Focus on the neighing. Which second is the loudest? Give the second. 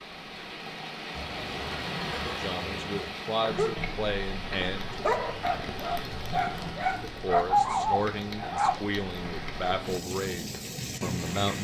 2 s.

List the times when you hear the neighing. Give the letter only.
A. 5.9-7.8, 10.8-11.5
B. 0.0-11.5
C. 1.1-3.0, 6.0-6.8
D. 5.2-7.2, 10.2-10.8
C.